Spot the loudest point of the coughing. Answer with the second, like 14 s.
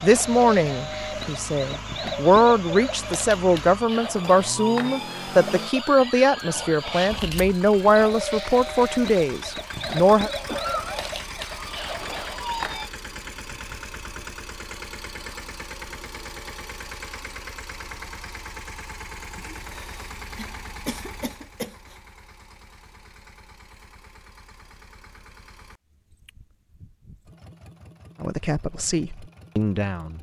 11 s.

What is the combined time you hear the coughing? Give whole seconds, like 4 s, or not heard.
3 s.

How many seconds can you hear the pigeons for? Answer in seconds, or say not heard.
not heard.